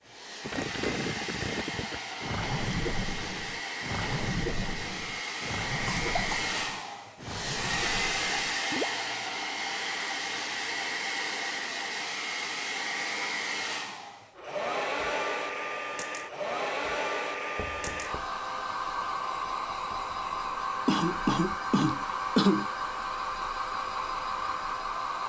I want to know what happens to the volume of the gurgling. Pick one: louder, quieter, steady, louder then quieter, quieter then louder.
quieter.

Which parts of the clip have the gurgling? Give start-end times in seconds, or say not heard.
0.4-9.1.